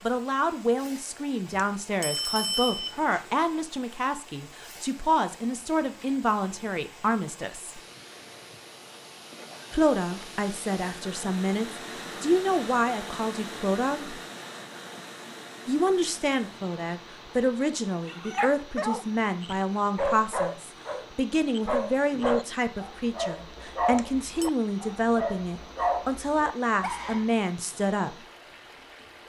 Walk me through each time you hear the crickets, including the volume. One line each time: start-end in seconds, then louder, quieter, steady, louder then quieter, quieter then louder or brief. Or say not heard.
not heard.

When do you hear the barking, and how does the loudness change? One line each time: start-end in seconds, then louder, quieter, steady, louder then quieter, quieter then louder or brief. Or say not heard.
18.1-27.3 steady.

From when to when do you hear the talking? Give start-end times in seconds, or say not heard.
0.0-7.8, 9.7-14.2, 15.7-28.1.